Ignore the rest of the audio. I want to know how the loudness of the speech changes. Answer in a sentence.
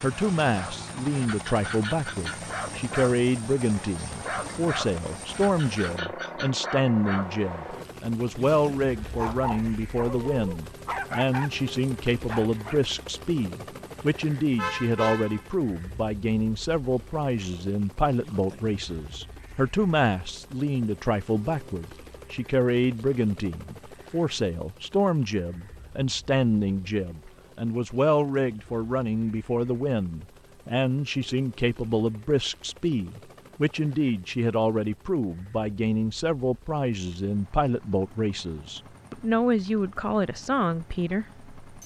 The volume of the speech stays about the same.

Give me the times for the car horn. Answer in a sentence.
The car horn can be heard from 14.6 to 15.5 s.